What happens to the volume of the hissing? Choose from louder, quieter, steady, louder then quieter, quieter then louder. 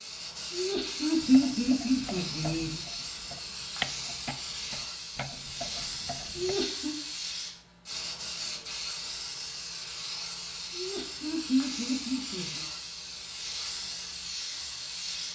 steady.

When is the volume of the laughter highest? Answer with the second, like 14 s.
1 s.